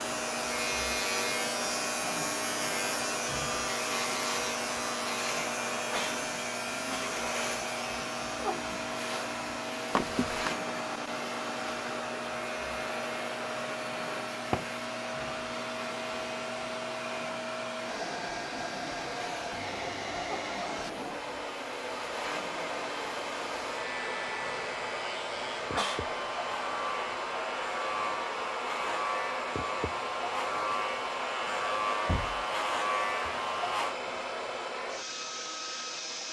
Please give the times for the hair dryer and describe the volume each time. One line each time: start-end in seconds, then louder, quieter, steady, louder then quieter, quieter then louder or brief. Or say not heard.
0.0-36.2 steady.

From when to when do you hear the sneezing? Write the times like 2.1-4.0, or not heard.
5.8-7.2, 25.7-26.6.